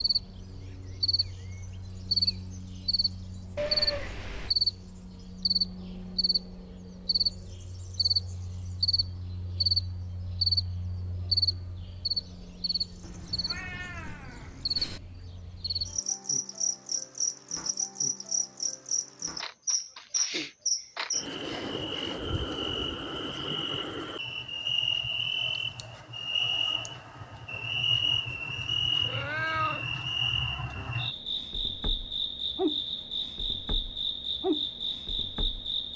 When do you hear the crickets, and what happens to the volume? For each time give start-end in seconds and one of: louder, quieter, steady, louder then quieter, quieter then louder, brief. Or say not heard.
0.0-35.9 steady.